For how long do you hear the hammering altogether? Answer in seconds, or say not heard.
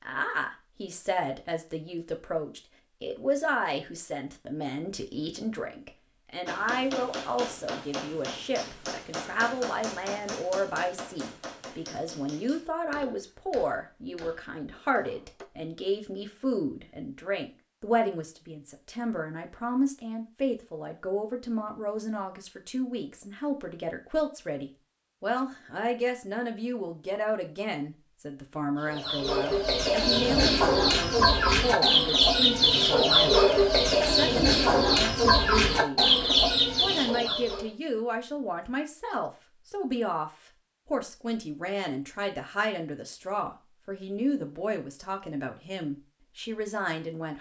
9 s.